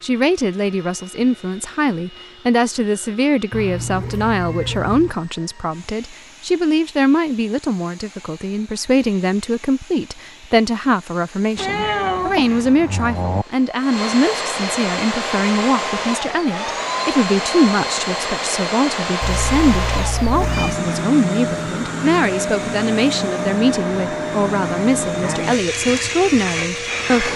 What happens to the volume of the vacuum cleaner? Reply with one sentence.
The loudness of the vacuum cleaner goes up.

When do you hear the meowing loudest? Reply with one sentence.
The loudest moment of the meowing is at 12 seconds.